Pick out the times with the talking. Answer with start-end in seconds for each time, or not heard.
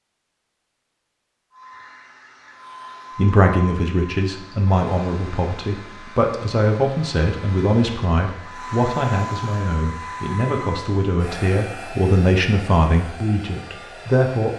3.1-14.5.